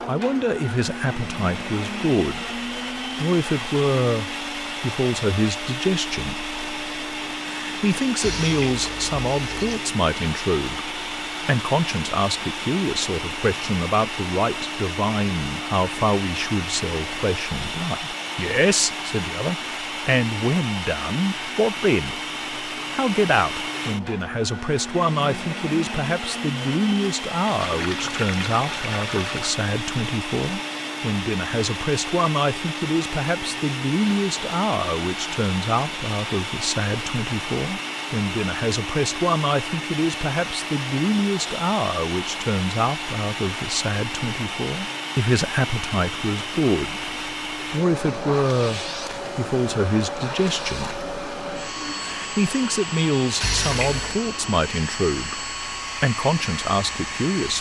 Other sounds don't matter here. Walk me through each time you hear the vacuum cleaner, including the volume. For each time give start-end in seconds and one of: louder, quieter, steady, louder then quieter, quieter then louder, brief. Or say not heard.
0.0-57.5 steady.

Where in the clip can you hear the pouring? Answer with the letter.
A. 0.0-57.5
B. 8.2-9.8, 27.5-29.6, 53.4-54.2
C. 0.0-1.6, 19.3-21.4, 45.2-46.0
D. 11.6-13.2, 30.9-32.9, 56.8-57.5
B.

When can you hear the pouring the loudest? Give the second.
54 s.